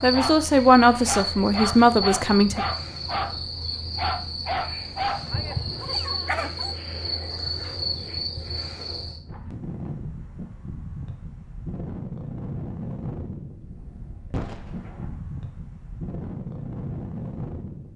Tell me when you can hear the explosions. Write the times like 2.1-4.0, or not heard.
14.3-15.2.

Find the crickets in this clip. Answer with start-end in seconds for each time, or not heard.
0.0-9.2.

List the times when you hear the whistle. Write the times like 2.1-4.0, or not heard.
not heard.